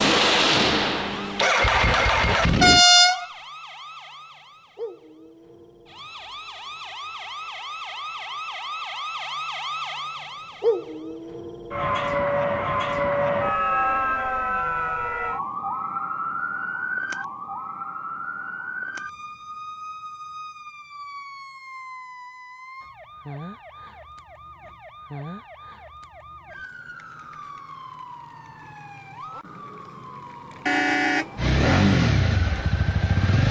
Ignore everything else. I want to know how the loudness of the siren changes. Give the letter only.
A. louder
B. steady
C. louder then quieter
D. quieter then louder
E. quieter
C.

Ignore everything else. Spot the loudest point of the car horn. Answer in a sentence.
The loudest moment of the car horn is at 3 seconds.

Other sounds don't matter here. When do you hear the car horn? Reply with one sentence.
You can hear the car horn from 2.6 to 3.2 s and from 30.6 to 32.0 s.